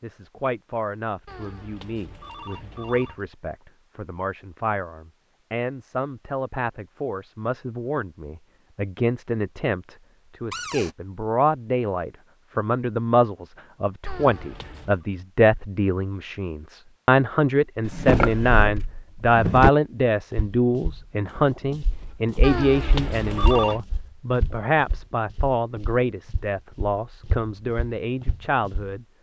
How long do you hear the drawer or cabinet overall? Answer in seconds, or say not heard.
2 s.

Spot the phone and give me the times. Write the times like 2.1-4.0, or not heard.
1.2-3.2, 14.1-15.1, 22.4-23.8.